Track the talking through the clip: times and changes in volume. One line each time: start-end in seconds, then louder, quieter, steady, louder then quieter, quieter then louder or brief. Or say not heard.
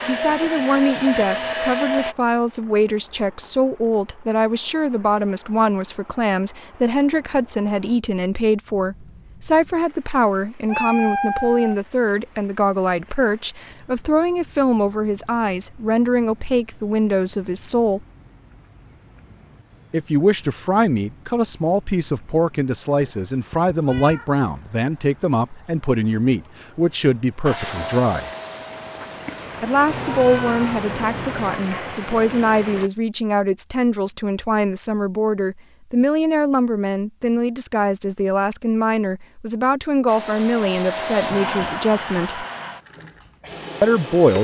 0.1-18.0 steady
19.9-28.3 steady
29.6-42.5 steady
43.8-44.3 brief.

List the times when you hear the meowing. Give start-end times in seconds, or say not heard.
10.7-11.8, 23.0-24.7, 29.9-31.6.